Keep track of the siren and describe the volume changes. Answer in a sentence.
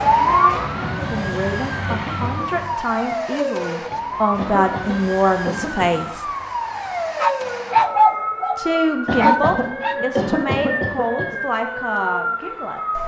The loudness of the siren stays about the same.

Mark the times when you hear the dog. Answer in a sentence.
The dog can be heard from 7.2 to 9.9 s.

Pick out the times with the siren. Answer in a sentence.
You can hear the siren from 0.0 to 13.0 s.